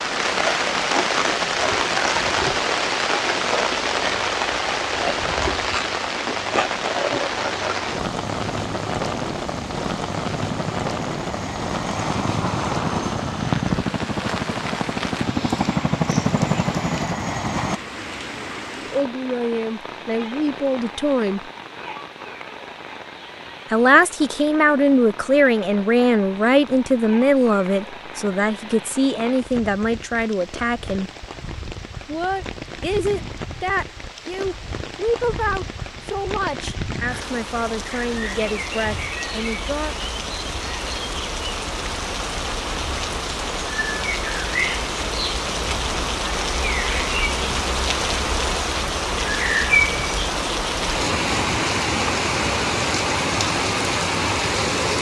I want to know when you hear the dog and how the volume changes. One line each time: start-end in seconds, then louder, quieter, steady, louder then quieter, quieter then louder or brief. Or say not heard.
not heard.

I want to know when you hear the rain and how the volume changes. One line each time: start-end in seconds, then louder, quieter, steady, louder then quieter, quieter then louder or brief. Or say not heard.
0.0-54.9 quieter then louder.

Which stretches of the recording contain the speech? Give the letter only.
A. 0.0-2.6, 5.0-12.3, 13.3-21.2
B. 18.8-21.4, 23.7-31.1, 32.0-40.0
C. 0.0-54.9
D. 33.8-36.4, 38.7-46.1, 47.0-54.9
B.